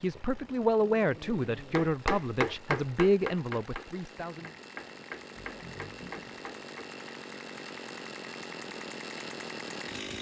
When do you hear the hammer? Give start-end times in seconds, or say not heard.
1.8-6.9.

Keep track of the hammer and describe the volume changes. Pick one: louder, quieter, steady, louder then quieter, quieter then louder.
quieter then louder.